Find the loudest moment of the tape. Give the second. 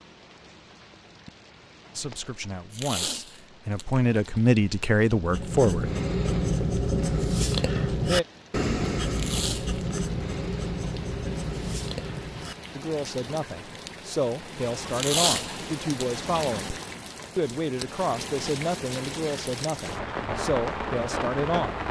15 s.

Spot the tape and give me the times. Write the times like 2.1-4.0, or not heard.
2.7-4.5, 9.1-9.8, 14.9-16.1.